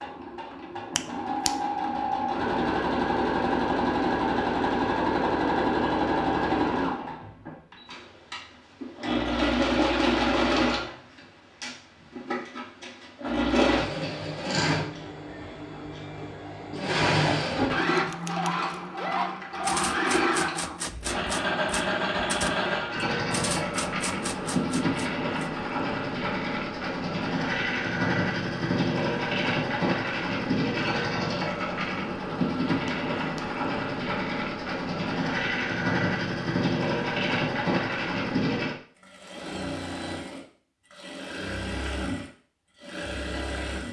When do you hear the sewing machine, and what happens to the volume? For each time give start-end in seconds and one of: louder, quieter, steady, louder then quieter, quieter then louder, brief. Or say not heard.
0.0-43.8 steady.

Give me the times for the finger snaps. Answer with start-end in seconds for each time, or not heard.
0.9-1.6, 32.9-33.5.